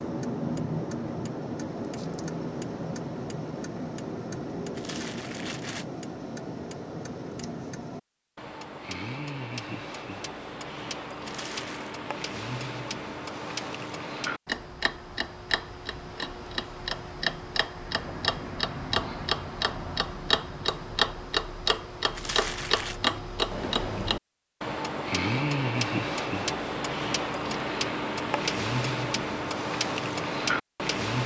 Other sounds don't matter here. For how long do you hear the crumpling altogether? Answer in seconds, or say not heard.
3 s.